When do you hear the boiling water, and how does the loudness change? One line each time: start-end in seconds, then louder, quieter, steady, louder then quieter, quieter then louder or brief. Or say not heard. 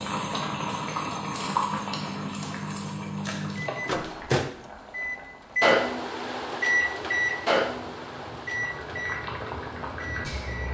0.0-10.6 quieter then louder.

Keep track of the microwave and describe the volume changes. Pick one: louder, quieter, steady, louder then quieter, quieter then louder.
louder then quieter.